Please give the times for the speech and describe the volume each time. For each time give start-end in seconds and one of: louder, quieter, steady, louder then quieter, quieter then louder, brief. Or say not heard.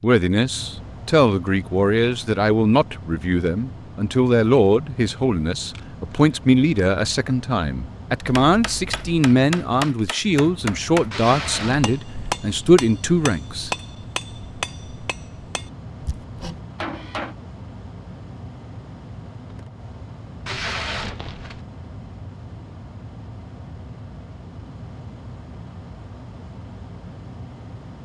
0.0-13.7 steady.